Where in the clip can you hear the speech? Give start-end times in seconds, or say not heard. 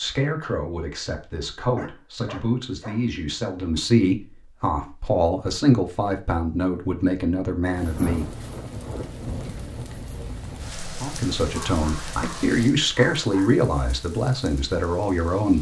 0.0-8.3, 11.0-15.5.